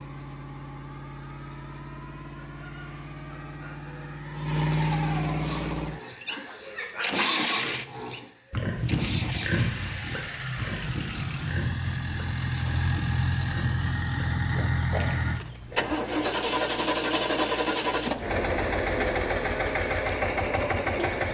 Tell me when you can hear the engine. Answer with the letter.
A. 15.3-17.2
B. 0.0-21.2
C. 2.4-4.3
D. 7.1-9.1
B.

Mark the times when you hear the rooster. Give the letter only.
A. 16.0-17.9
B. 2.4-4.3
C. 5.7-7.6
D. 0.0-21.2
B.